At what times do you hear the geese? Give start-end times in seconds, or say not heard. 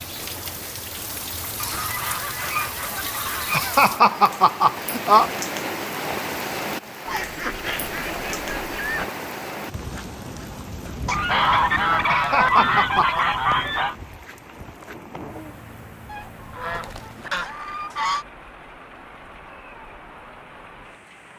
1.6-3.6, 7.0-9.1, 11.1-13.9, 16.1-18.2.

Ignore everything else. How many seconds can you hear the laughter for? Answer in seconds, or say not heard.
3 s.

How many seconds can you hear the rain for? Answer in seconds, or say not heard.
21 s.